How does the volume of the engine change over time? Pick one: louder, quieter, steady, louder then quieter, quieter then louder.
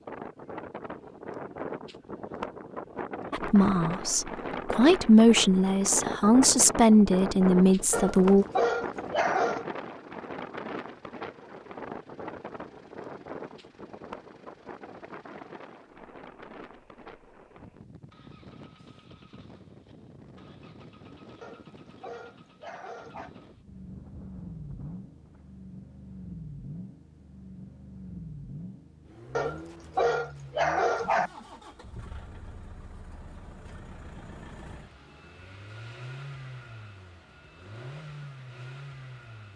louder.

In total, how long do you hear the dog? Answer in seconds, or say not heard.
6 s.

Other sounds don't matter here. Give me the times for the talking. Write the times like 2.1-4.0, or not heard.
3.3-8.4.